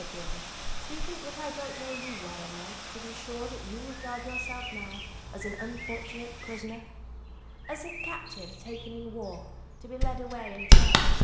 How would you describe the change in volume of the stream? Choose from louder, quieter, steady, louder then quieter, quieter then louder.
quieter.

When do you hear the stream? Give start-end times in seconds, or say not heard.
0.0-6.7.